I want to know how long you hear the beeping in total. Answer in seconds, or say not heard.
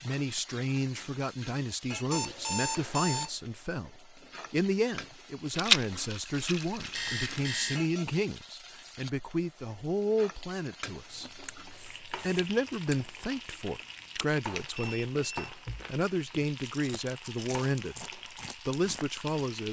3 s.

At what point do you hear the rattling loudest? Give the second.
6 s.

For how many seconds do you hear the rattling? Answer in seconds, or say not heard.
2 s.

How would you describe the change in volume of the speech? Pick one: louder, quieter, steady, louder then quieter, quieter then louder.
steady.